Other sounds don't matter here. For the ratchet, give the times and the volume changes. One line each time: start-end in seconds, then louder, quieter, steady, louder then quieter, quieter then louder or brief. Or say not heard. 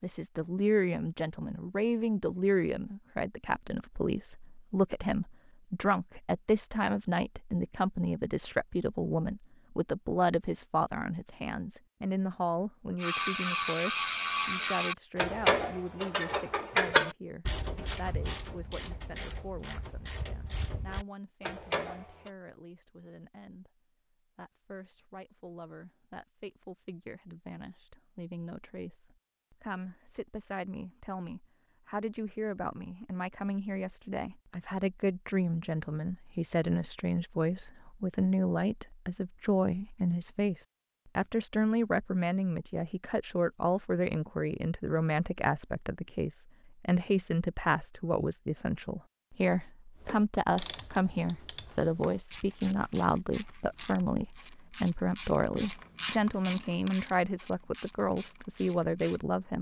13.0-22.3 quieter then louder
50.0-59.2 louder then quieter.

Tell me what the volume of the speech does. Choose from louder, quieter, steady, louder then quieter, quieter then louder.
quieter then louder.